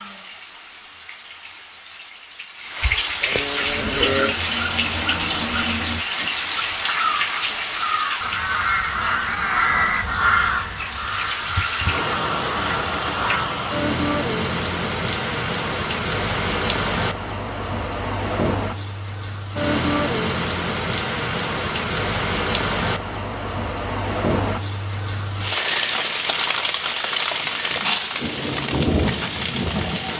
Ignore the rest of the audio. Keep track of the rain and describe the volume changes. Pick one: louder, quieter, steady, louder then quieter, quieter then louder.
steady.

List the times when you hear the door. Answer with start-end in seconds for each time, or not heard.
not heard.